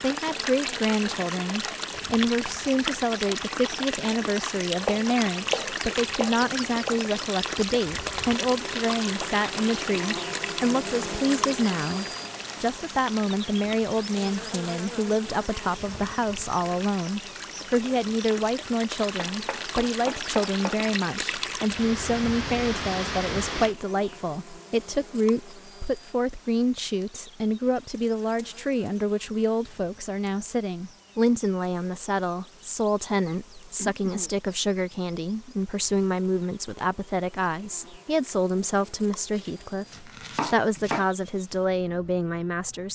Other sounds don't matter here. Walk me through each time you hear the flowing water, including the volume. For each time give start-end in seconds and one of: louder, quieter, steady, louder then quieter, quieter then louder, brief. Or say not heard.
0.0-23.8 quieter then louder.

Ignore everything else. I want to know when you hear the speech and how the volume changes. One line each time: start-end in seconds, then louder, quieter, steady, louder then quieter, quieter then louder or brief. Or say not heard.
0.0-42.8 steady.